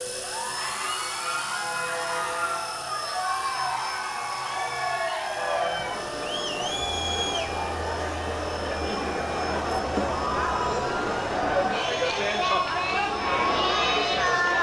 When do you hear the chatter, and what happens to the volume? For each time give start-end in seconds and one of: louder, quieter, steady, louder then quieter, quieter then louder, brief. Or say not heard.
0.3-14.5 louder.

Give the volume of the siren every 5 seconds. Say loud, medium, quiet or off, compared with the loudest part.
loud, loud, medium.